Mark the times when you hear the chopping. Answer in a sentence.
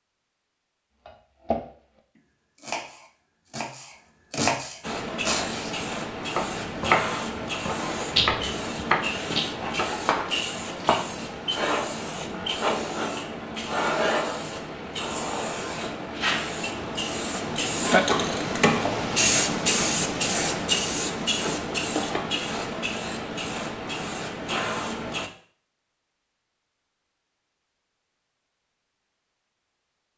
You can hear the chopping from 1.1 to 1.6 s and from 2.6 to 11.1 s.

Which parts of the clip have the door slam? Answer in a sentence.
The door slam can't be heard in this clip.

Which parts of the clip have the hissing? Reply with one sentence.
The hissing can be heard from 4.8 to 25.3 s.